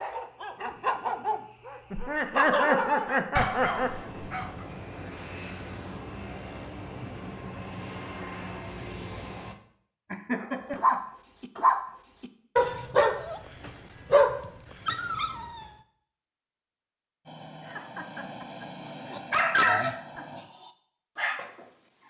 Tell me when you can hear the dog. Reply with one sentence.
The dog can be heard from 0.0 to 4.7 s, from 10.4 to 15.7 s and from 19.1 to 22.0 s.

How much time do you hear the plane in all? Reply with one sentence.
The plane can be heard for 9 seconds in total.